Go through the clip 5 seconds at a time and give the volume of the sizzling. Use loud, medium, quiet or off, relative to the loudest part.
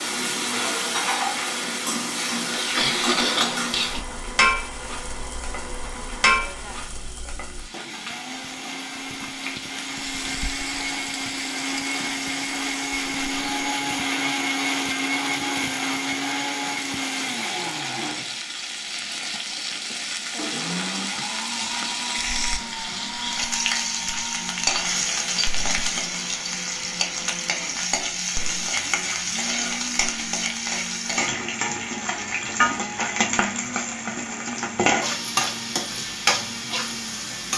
loud, medium, medium, medium, loud, loud, loud, loud.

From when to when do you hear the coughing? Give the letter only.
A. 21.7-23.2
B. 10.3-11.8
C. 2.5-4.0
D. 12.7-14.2
C.